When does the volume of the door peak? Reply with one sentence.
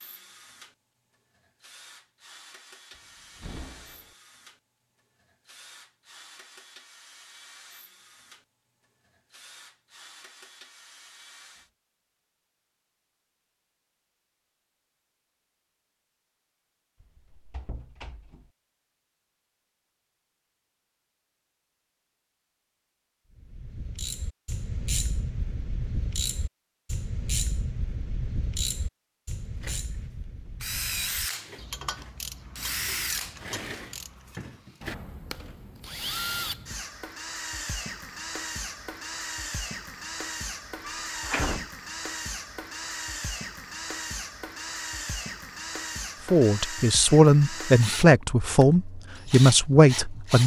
The volume of the door peaks at 41 seconds.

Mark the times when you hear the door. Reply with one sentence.
The door can be heard from 3.0 to 4.2 s, from 17.0 to 18.5 s and from 40.8 to 41.6 s.